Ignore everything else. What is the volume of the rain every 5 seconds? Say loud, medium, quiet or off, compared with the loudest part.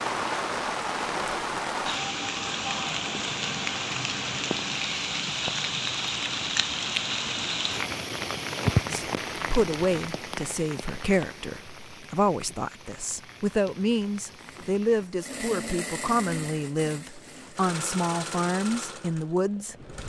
loud, loud, quiet, quiet.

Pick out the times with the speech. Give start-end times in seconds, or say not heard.
8.9-19.8.